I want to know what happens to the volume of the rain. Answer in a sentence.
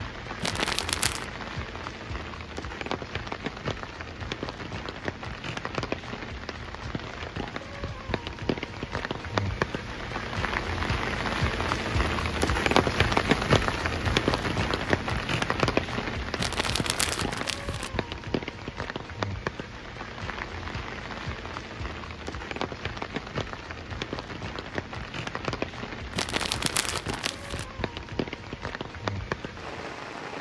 The volume of the rain goes up, then down.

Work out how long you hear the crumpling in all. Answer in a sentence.
The crumpling can be heard for 4 seconds in total.